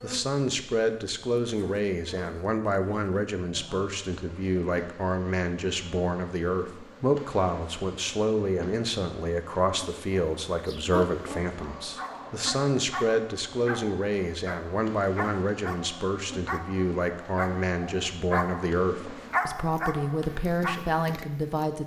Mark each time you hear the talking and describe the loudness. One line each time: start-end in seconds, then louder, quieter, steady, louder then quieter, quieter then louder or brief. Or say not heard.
0.0-21.8 steady.